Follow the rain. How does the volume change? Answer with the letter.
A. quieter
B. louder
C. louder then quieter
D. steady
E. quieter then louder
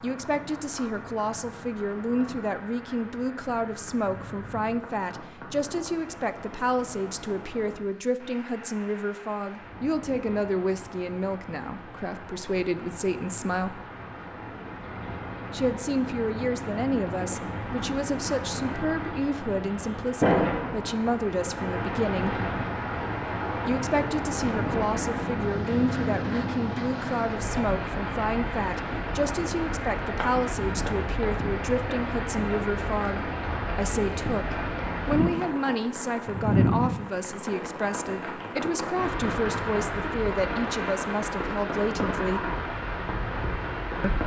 B.